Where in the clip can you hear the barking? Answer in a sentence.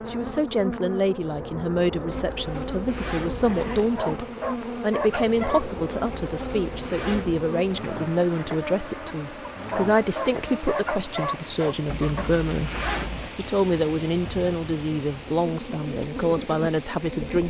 You can hear the barking from 3.8 to 5.7 s and from 9.5 to 12.2 s.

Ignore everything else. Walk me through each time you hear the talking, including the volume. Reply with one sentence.
You can hear the talking from 0.1 to 17.4 s, at a steady volume.